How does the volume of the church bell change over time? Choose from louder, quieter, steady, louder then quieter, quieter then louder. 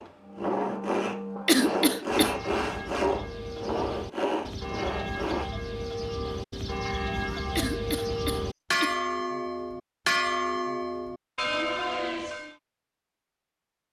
louder.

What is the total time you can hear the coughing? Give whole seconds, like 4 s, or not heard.
2 s.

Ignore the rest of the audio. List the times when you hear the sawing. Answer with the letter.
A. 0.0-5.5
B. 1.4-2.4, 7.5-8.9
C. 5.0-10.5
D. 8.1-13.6
A.